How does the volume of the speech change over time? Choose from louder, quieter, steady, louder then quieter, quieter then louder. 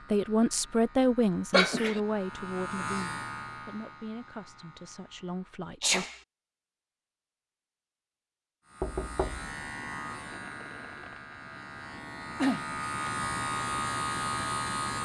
quieter.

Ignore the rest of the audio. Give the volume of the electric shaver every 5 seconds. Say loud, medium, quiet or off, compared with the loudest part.
medium, medium, loud.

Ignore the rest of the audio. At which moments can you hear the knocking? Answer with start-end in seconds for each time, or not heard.
8.8-9.5.